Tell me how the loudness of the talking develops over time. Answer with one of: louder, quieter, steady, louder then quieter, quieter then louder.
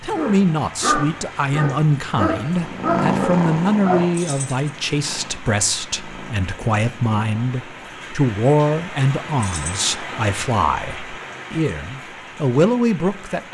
steady.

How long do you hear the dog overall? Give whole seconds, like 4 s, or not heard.
4 s.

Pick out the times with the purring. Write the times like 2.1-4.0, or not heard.
2.5-8.0.